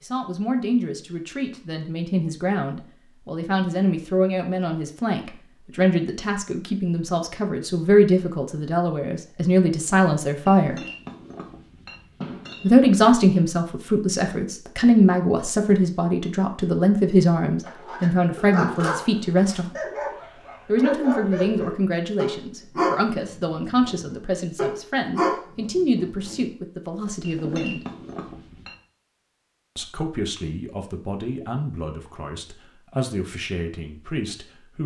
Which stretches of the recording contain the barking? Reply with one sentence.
The barking can be heard from 17.6 to 26.4 s.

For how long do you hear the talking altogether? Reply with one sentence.
You can hear the talking for 30 seconds altogether.